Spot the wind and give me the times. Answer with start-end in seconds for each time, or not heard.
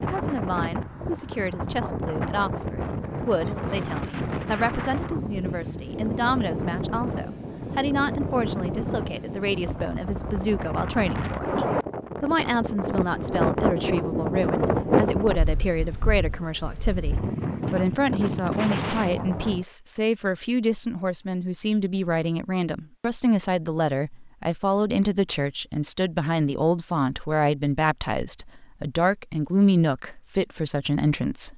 0.0-19.6.